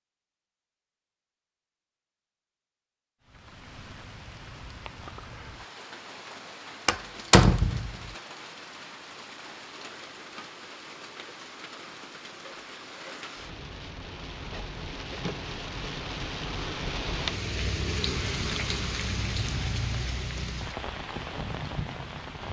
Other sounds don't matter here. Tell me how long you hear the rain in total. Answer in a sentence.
The rain can be heard for 19 seconds in total.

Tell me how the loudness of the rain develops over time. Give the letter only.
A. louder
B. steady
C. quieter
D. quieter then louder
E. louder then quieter
A.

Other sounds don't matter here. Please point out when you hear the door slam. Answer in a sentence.
The door slam can be heard from 6.8 to 8.0 s.